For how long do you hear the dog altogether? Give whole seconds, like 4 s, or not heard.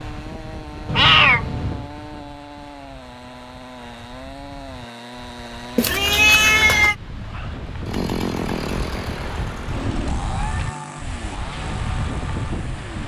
not heard.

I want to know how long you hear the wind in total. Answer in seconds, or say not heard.
13 s.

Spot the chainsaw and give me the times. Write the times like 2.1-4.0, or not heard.
0.0-13.0.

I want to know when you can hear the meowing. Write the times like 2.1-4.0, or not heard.
0.8-1.9, 5.8-7.0, 10.2-10.8.